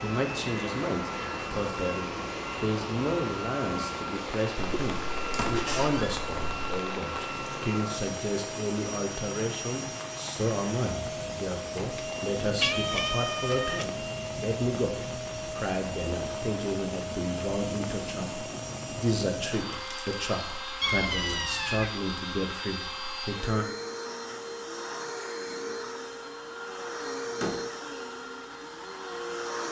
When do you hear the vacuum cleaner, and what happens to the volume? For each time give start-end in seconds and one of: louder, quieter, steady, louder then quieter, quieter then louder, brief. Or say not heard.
0.0-29.6 steady.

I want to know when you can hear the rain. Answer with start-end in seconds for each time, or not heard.
0.0-19.8.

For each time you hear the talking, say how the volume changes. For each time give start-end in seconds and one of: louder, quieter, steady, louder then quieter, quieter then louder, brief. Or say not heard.
0.0-23.6 steady.